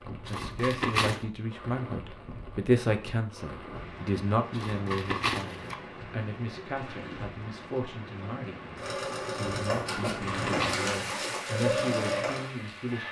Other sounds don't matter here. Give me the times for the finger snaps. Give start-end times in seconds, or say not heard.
not heard.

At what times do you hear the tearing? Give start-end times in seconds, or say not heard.
0.2-1.2, 4.5-5.8, 10.1-10.9.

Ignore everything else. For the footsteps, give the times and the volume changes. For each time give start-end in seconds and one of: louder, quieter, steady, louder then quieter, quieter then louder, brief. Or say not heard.
not heard.